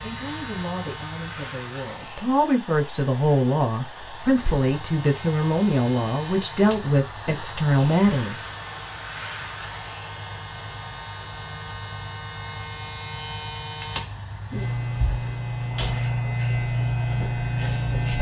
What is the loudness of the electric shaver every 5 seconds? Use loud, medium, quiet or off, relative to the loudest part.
quiet, quiet, medium, loud.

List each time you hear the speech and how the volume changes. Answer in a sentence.
The speech can be heard from 0.0 to 8.4 s, getting louder.